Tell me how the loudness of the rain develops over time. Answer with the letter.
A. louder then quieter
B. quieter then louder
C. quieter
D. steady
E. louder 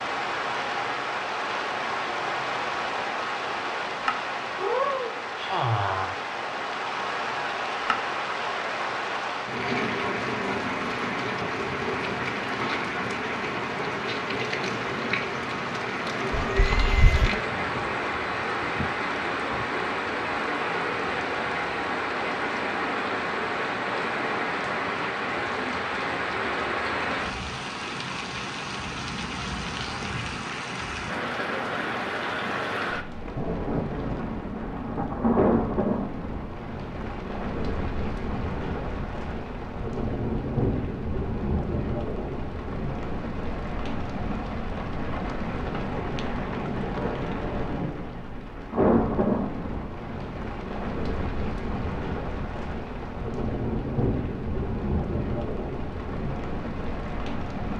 D.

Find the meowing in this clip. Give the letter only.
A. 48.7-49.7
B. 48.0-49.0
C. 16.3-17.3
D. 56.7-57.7
C.